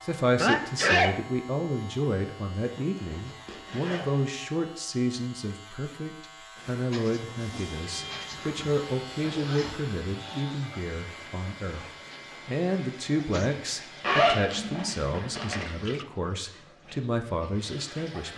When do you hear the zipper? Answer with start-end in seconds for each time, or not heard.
3.0-4.2, 8.0-9.8, 14.0-15.7.